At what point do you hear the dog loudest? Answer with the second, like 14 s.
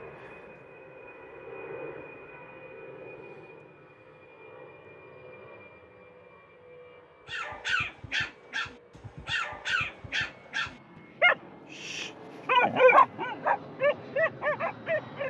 13 s.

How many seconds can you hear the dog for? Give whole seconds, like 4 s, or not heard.
8 s.